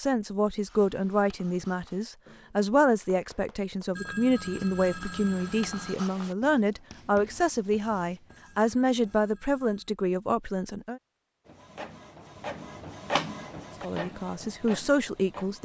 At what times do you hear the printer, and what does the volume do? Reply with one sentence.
You can hear the printer from 11.4 to 15.5 s, getting louder then quieter.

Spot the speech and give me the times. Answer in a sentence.
The speech can be heard from 0.0 to 11.0 s and from 13.8 to 15.5 s.